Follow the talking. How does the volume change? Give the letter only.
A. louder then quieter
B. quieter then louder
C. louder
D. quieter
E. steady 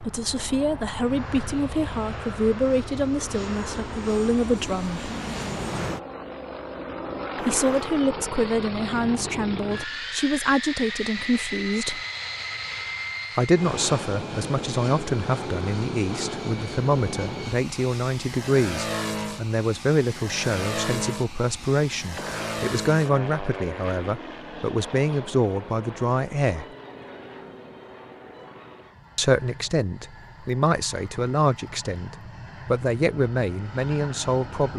E.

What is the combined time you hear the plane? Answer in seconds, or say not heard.
35 s.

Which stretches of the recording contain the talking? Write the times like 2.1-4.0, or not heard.
0.0-5.1, 7.4-12.0, 13.3-26.6, 29.1-34.7.